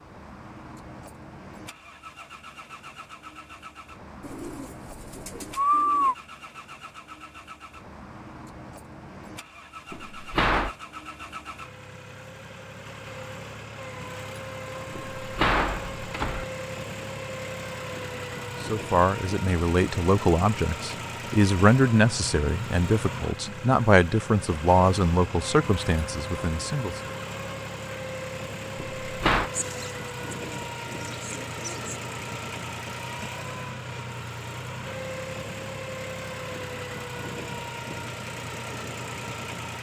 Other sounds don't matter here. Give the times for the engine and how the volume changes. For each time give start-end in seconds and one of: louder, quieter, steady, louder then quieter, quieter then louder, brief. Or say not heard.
0.0-39.7 louder.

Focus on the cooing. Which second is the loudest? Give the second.
6 s.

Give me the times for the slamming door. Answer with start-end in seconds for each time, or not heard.
9.9-10.7, 14.9-16.4, 28.8-29.5.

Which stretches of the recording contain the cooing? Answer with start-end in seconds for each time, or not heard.
4.2-6.2, 29.5-31.9.